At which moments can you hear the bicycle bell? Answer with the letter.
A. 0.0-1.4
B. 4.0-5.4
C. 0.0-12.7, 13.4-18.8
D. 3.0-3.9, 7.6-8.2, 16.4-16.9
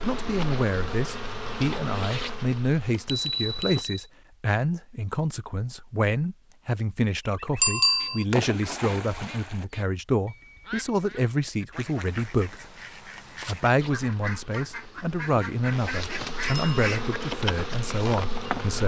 D.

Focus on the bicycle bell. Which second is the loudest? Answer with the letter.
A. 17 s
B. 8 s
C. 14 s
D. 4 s
B.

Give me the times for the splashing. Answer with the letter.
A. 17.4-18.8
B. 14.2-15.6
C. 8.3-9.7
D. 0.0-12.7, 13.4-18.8
C.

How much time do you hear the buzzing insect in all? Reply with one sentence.
The buzzing insect can be heard for 9 seconds in total.